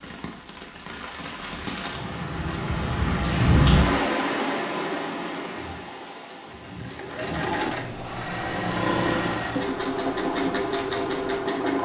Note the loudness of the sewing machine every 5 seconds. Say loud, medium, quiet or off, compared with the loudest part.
off, loud, loud.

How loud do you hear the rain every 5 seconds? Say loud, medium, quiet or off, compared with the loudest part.
loud, medium, quiet.